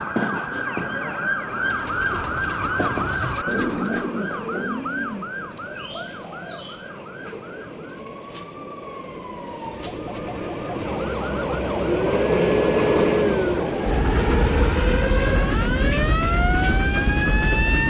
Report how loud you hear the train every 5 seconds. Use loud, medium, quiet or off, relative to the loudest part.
quiet, quiet, loud, loud.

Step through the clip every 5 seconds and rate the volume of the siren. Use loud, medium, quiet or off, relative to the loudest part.
loud, quiet, loud, loud.